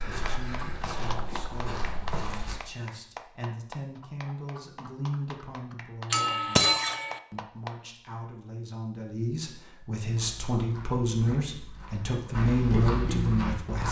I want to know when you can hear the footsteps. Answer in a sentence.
The footsteps can be heard from 0.0 to 2.5 s and from 10.1 to 13.8 s.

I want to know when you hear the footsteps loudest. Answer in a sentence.
The volume of the footsteps peaks at 13 seconds.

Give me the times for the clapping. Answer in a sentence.
The clapping can be heard from 0.2 to 7.8 s.